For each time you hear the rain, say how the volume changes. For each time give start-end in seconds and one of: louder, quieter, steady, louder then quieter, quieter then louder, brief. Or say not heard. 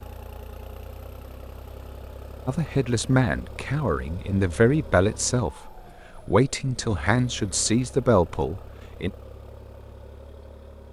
not heard.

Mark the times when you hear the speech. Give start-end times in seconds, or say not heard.
2.5-9.1.